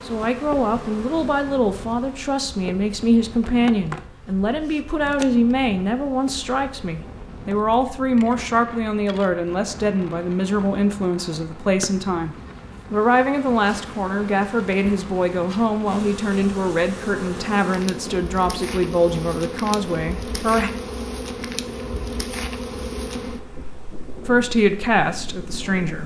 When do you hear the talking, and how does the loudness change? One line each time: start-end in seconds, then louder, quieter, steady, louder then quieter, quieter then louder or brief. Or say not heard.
0.1-20.7 steady
24.2-26.0 brief.